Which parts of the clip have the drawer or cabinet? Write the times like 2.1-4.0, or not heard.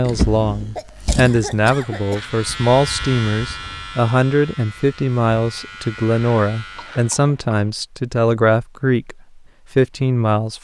0.1-1.8.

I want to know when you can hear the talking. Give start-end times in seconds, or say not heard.
0.0-10.6.